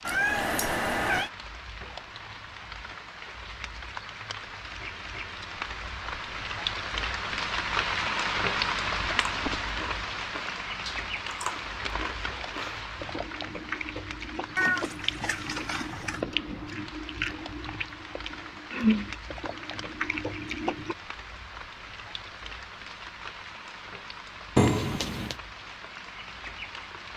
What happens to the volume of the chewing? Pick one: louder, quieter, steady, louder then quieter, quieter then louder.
louder.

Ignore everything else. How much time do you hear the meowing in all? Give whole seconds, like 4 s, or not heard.
4 s.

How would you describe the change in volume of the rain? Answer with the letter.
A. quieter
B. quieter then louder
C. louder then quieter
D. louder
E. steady
C.